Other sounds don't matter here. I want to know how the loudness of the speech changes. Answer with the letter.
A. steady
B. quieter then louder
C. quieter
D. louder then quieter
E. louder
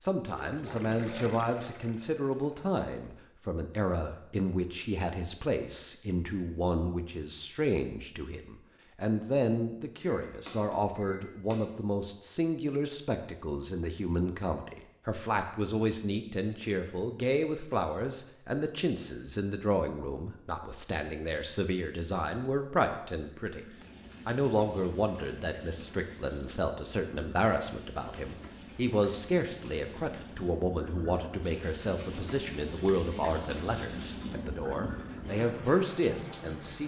A.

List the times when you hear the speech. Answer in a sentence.
The speech can be heard from 0.0 to 23.6 s and from 24.2 to 36.8 s.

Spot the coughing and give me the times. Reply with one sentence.
The coughing can't be heard in this clip.